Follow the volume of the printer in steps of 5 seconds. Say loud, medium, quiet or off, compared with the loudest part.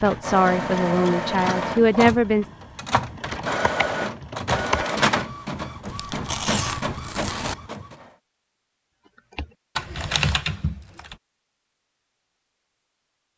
loud, loud, off.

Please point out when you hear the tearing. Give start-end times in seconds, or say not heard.
5.8-7.5.